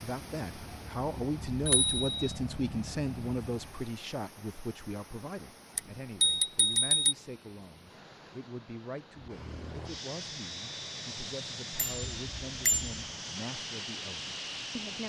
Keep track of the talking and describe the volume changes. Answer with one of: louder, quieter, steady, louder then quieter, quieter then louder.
quieter.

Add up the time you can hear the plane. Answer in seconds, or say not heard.
10 s.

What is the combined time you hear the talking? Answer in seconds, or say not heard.
15 s.